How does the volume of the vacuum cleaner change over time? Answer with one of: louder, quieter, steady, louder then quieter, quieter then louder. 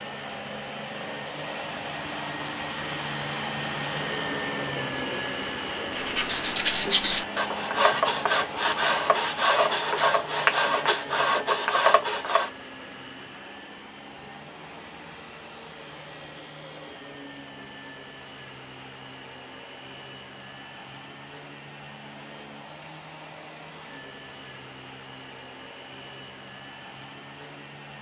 quieter.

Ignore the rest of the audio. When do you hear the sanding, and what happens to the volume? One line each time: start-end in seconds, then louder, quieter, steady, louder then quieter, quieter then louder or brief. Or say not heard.
6.0-12.5 steady.